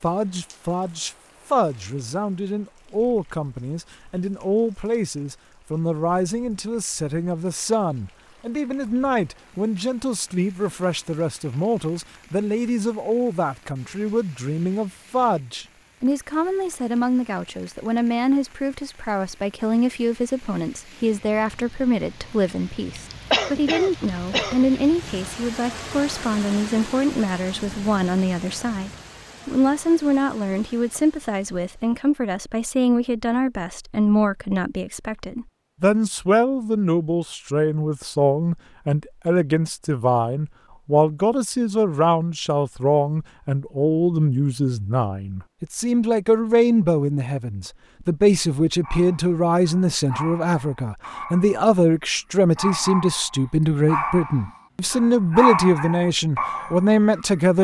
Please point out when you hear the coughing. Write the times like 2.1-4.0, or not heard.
23.3-24.8.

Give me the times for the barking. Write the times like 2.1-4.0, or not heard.
48.9-57.5.